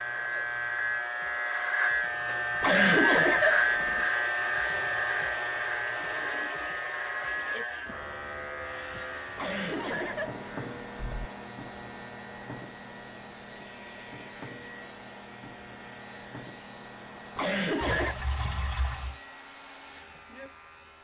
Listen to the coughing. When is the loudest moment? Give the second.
3 s.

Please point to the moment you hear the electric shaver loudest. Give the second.
3 s.